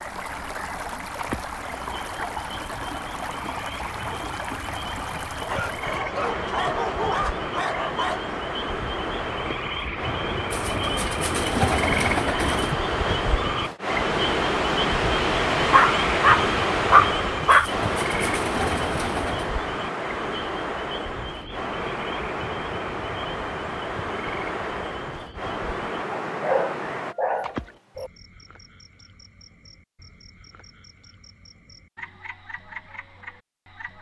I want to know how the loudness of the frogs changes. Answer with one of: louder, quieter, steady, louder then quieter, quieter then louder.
louder then quieter.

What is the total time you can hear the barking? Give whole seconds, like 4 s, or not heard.
7 s.